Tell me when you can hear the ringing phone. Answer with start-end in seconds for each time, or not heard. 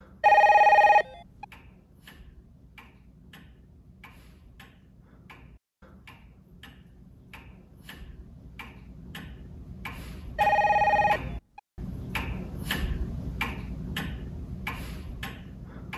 0.2-1.4, 10.3-11.6.